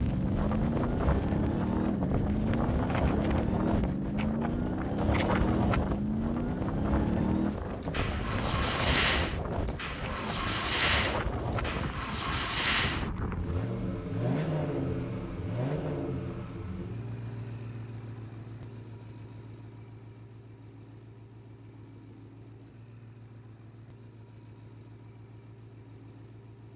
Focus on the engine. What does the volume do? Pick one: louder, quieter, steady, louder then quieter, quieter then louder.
quieter.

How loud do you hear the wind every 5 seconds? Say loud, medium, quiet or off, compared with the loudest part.
loud, loud, loud, off, off, off.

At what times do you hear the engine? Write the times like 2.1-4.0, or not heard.
0.0-26.7.